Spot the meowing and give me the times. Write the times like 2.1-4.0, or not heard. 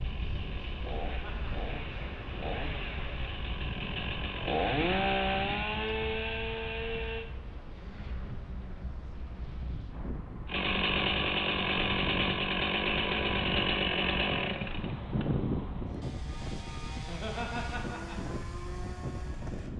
not heard.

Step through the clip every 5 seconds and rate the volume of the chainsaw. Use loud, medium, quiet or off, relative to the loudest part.
medium, loud, loud, medium.